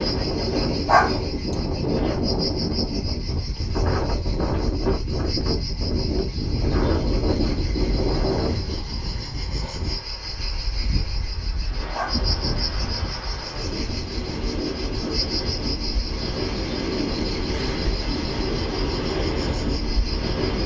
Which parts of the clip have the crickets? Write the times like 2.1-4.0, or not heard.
0.0-20.6.